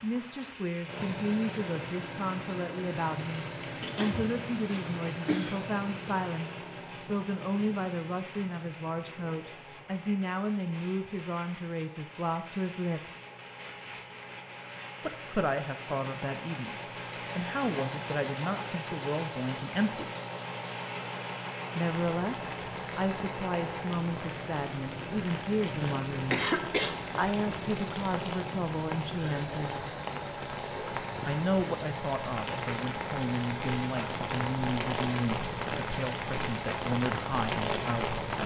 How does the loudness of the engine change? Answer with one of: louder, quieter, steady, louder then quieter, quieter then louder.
quieter then louder.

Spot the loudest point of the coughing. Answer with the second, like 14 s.
26 s.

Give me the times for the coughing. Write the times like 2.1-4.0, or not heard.
3.8-5.8, 25.8-27.1.